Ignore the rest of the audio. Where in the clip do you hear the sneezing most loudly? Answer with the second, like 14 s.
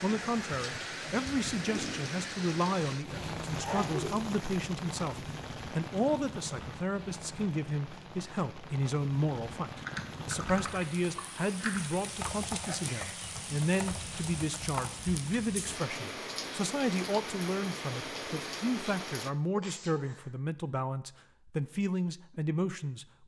4 s.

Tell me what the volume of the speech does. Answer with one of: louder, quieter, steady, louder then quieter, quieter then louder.
steady.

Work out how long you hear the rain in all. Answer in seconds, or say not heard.
19 s.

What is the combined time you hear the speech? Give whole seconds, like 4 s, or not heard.
23 s.